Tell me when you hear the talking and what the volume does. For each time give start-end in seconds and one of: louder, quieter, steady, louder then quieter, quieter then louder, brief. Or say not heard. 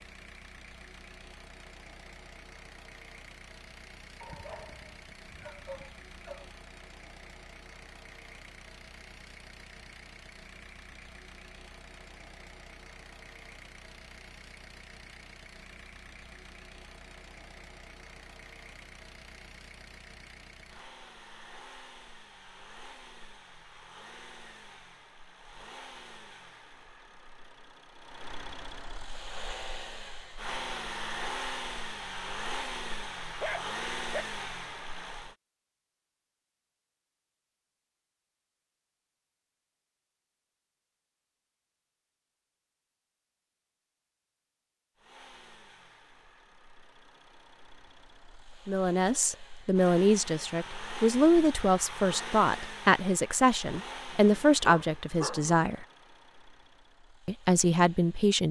48.6-55.9 steady
57.2-58.4 brief.